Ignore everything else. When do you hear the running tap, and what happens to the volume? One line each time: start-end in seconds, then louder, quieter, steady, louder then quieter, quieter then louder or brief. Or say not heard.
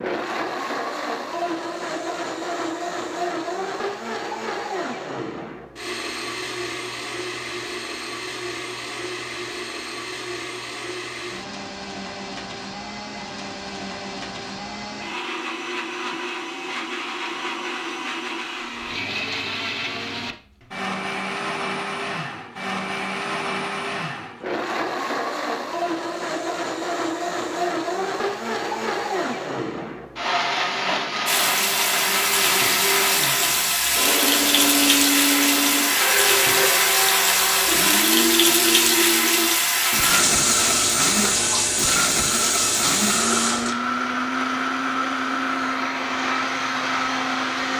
31.2-43.8 steady.